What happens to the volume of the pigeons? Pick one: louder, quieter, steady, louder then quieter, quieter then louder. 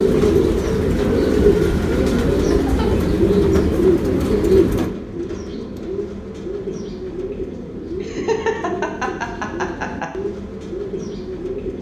quieter.